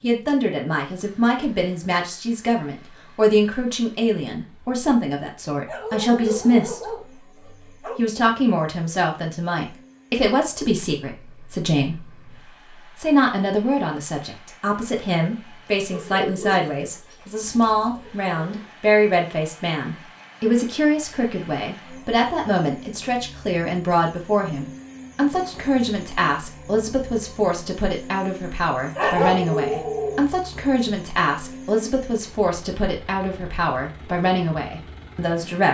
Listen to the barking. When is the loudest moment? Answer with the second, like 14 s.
29 s.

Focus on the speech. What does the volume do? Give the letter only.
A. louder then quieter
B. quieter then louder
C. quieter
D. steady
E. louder
D.